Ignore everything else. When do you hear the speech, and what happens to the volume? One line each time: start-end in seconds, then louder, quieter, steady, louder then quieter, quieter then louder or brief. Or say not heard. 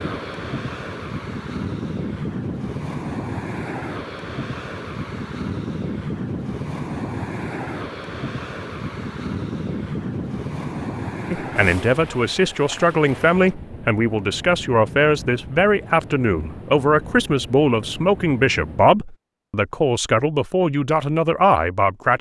11.3-22.1 steady.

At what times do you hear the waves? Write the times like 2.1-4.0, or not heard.
0.0-19.0.